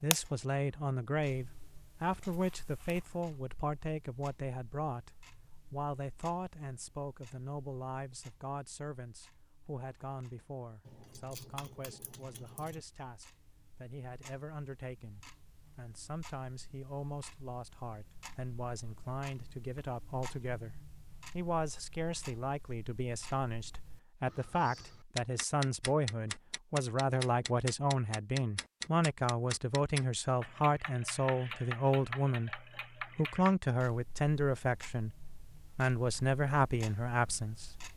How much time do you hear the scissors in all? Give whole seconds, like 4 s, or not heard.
2 s.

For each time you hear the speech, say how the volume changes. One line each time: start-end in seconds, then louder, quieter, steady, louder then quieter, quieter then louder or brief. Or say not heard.
0.0-37.7 quieter then louder.